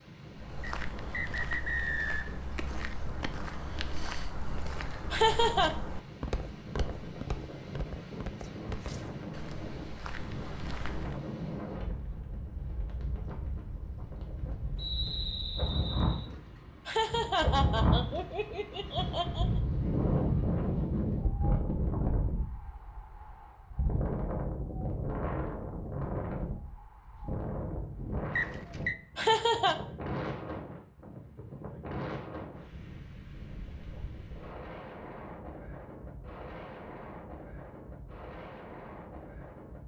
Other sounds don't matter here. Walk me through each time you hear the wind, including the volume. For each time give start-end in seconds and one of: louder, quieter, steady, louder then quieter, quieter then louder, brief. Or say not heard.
0.0-39.8 louder then quieter.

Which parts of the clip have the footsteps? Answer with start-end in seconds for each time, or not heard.
0.3-11.2.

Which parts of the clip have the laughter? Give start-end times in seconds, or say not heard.
5.1-5.7, 16.9-19.4, 29.1-29.8.